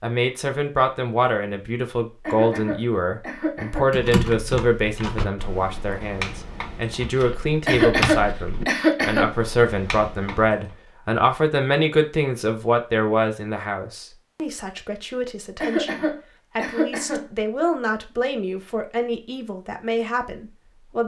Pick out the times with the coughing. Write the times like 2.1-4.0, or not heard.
2.2-3.9, 7.7-9.3, 15.6-17.2.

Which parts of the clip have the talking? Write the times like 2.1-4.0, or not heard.
0.0-21.0.